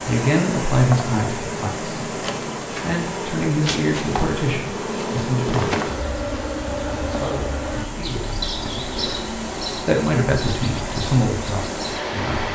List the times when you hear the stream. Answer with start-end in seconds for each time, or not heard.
0.0-12.5.